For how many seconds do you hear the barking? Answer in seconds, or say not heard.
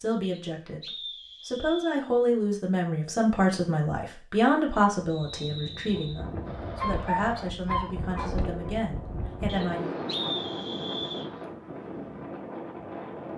2 s.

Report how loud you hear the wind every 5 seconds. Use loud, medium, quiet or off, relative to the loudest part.
off, loud, loud.